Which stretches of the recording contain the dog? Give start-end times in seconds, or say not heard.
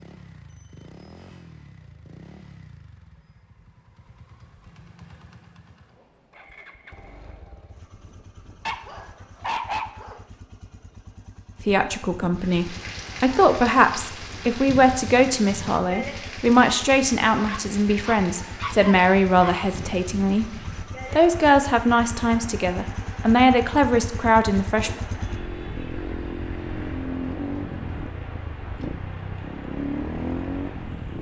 8.7-10.2, 17.4-19.6.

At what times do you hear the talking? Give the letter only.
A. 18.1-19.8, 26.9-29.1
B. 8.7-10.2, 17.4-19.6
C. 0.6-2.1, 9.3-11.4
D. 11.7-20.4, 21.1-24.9
D.